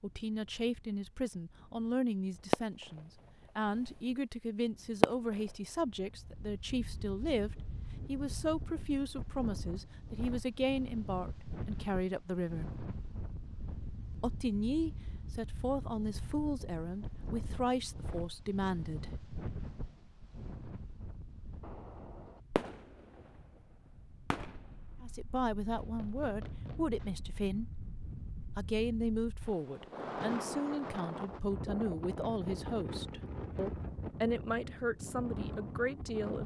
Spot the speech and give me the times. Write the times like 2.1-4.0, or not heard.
0.0-12.8, 14.2-19.1, 25.0-27.8, 28.6-36.4.